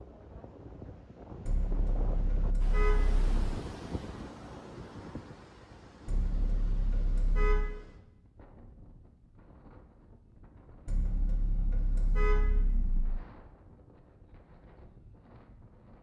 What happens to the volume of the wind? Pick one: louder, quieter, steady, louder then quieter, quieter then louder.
quieter.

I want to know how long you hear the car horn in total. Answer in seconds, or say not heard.
6 s.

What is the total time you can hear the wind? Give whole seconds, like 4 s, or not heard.
16 s.